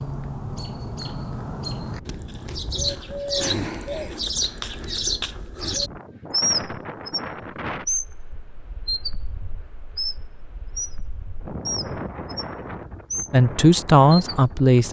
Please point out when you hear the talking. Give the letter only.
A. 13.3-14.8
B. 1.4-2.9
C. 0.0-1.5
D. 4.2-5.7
A.